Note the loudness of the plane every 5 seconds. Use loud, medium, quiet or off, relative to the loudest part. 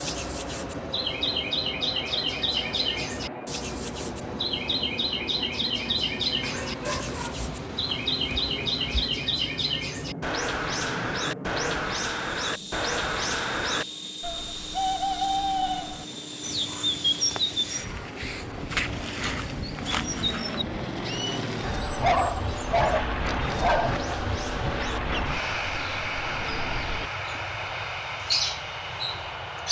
medium, medium, medium, medium, loud, loud.